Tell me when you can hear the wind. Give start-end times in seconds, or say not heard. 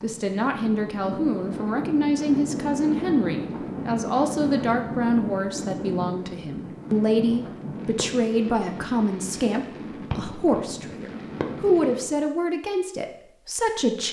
0.0-12.2.